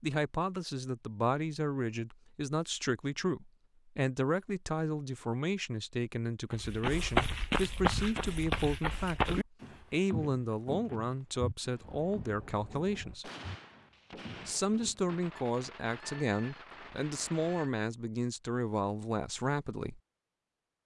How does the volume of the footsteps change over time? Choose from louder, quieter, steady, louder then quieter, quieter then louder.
quieter.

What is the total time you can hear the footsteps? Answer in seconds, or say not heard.
9 s.